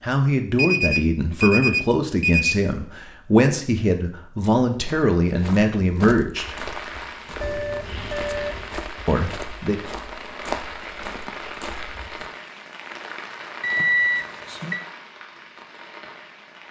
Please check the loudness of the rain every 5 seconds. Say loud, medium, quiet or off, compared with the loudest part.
off, loud, loud, medium.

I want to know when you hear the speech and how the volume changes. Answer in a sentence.
The speech can be heard from 0.0 to 6.6 s, at a steady volume; and briefly from 9.1 to 9.8 s.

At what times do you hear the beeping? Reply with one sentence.
You can hear the beeping from 0.6 to 2.5 s, from 7.4 to 8.7 s and from 13.6 to 14.8 s.